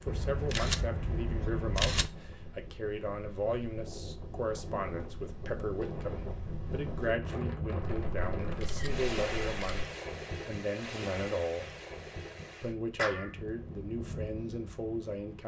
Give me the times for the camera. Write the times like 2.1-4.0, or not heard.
0.1-2.1, 7.8-9.8.